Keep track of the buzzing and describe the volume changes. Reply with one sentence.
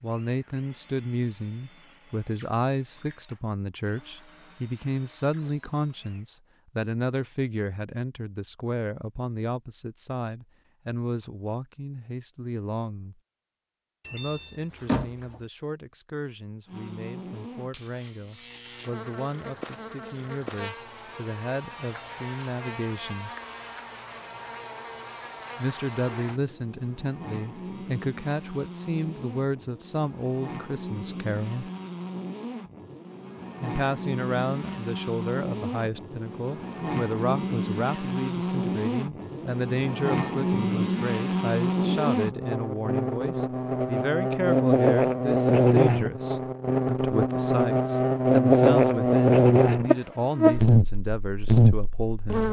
The volume of the buzzing goes up.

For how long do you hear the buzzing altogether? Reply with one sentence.
You can hear the buzzing for 36 seconds altogether.